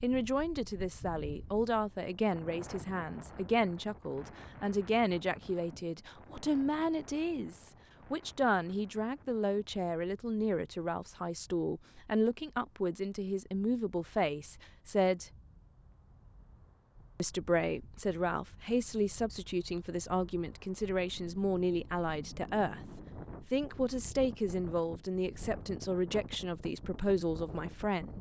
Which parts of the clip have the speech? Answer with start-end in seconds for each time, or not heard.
0.0-15.3, 17.1-22.8, 23.4-28.1.